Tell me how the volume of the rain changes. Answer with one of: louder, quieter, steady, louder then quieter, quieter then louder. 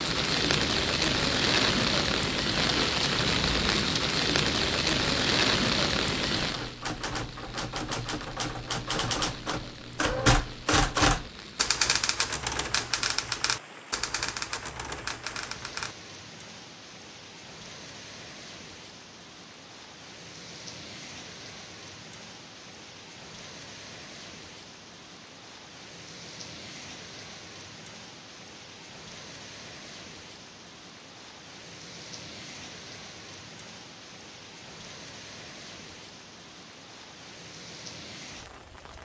quieter.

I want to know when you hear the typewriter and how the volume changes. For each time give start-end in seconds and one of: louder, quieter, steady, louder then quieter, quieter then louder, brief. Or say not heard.
6.3-15.9 louder then quieter.